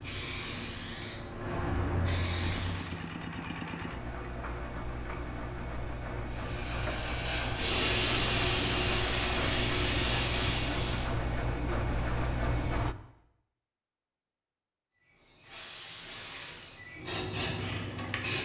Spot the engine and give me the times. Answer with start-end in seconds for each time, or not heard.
2.4-12.9.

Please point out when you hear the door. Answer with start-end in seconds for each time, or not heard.
not heard.